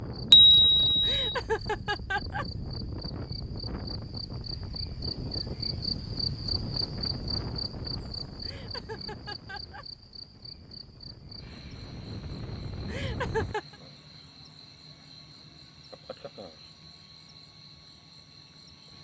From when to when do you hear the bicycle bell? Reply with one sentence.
You can hear the bicycle bell from 0.3 to 1.2 s.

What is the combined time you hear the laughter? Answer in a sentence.
The laughter can be heard for 4 seconds in total.